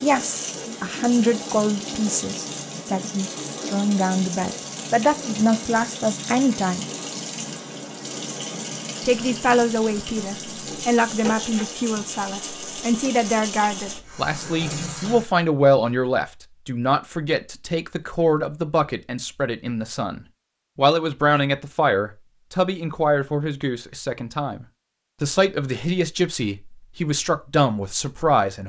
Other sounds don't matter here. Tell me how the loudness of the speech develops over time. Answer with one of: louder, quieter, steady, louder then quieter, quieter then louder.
steady.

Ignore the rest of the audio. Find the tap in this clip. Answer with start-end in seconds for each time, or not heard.
0.0-15.2.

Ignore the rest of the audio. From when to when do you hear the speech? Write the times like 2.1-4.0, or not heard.
0.0-6.8, 9.1-28.6.